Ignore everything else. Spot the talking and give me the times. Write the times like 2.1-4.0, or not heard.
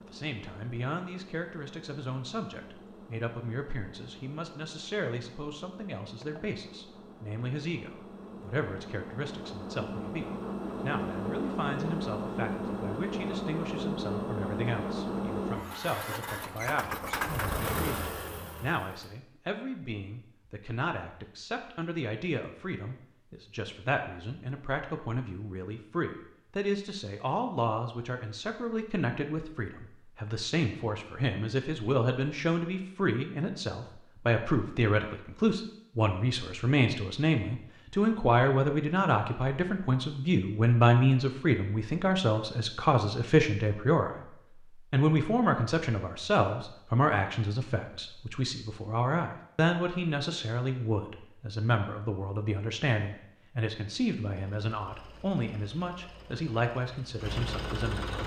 0.0-58.2.